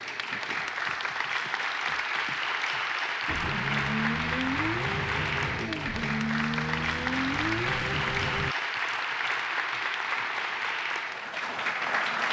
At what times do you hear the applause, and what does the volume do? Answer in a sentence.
The applause can be heard from 0.0 to 12.2 s, at a steady volume.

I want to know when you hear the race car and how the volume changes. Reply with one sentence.
You can hear the race car from 3.2 to 8.6 s, at a steady volume.